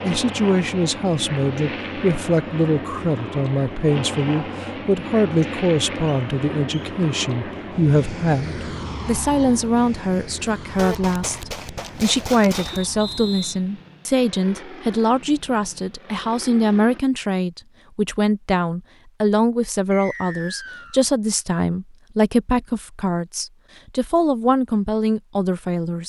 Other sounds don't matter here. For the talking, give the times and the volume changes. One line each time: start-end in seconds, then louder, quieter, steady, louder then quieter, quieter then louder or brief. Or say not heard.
0.0-26.0 steady.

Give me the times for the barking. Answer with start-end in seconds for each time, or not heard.
not heard.